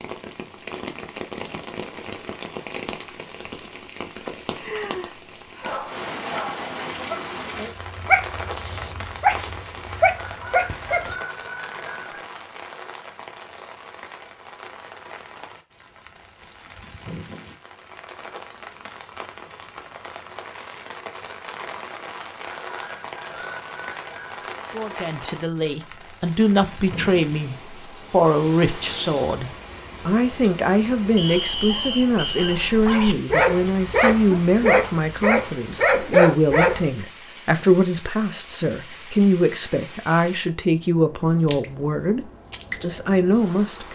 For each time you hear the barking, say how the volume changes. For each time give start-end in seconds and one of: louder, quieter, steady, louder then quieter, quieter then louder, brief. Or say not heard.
5.6-11.2 louder
31.2-36.9 louder.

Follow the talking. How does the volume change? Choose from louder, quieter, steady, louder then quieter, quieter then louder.
steady.